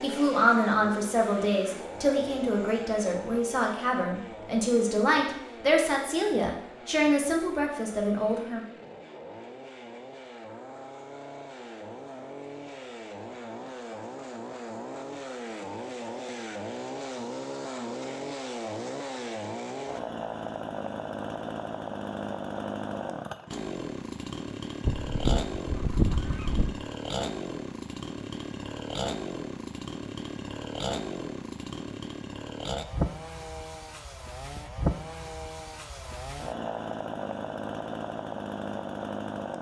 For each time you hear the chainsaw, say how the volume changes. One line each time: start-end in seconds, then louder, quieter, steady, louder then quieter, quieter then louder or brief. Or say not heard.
0.0-39.5 louder.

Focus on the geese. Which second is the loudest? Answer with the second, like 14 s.
26 s.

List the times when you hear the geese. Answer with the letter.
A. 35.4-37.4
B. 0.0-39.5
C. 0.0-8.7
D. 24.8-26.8
D.